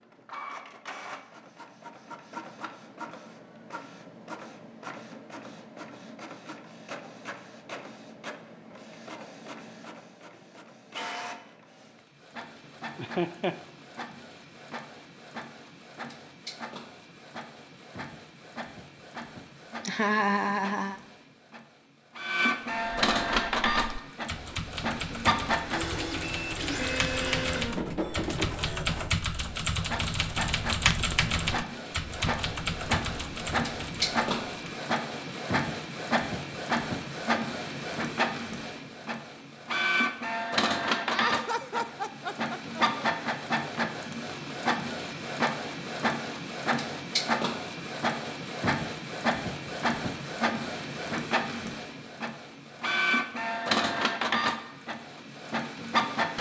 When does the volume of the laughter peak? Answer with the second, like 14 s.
20 s.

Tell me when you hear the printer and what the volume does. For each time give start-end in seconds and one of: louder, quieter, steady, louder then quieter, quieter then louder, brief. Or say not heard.
0.0-56.3 louder.